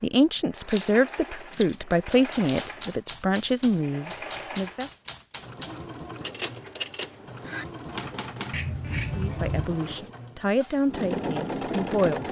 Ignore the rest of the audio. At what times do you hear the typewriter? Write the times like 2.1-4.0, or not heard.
1.5-10.1.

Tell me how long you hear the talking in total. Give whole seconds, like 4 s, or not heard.
8 s.